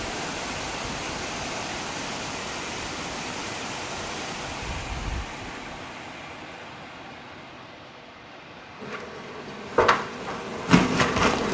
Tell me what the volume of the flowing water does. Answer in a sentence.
The volume of the flowing water goes down.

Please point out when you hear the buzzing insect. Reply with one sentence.
You can hear the buzzing insect from 8.8 to 11.4 s.